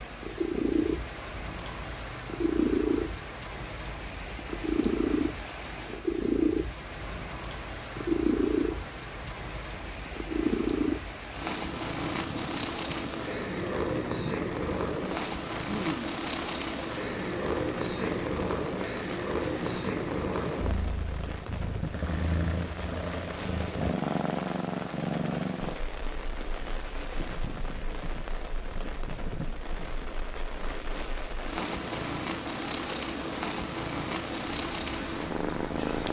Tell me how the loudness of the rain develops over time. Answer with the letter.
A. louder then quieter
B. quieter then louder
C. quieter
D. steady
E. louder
D.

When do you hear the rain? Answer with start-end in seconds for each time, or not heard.
0.0-36.0.